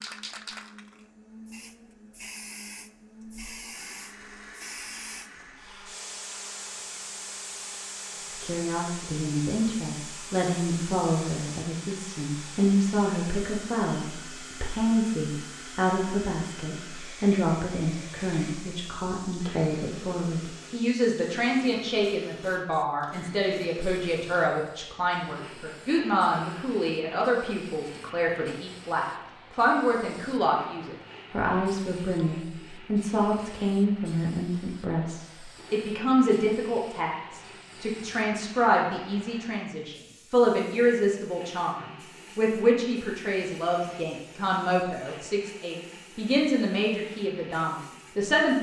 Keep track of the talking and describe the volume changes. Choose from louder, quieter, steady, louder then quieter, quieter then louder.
steady.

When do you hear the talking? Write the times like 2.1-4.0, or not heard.
8.4-48.5.